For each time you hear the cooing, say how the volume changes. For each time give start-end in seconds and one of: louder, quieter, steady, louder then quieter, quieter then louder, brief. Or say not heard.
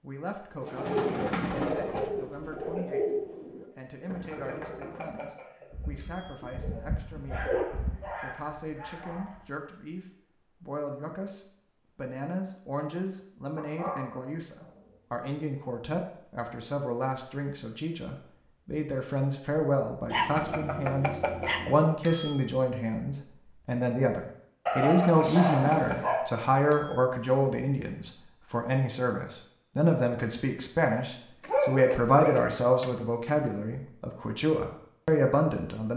0.6-8.1 quieter then louder.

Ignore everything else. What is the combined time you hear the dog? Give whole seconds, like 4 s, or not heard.
10 s.